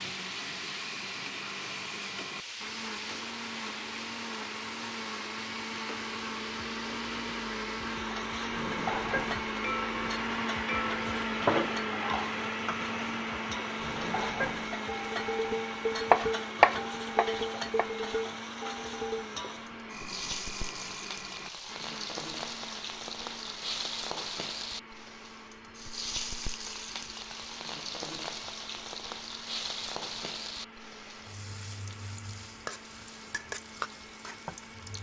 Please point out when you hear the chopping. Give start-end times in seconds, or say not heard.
16.1-17.9.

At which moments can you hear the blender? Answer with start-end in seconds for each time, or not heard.
0.0-34.9.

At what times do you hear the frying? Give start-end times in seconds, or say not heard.
0.0-34.9.